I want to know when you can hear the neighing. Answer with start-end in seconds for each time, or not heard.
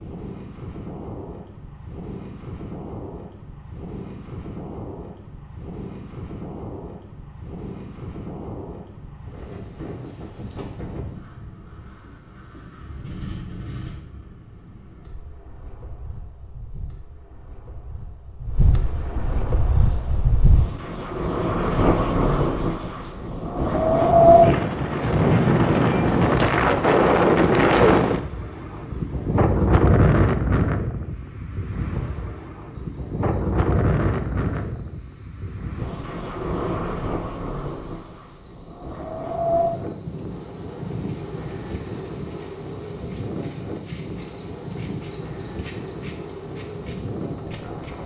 not heard.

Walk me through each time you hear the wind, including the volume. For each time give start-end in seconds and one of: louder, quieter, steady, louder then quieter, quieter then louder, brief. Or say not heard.
0.0-48.0 louder then quieter.